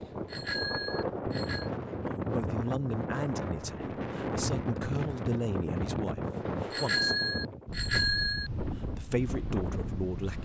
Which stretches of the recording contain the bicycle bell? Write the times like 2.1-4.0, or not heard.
0.2-1.7, 6.7-8.5.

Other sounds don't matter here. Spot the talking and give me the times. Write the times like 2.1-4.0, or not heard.
2.1-7.2, 8.9-10.4.